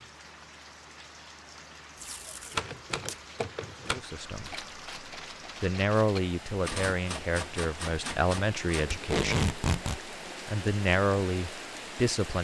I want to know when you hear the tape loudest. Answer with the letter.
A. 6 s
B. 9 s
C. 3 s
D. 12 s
B.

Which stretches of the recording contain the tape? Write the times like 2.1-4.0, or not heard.
2.0-3.1, 8.9-10.0.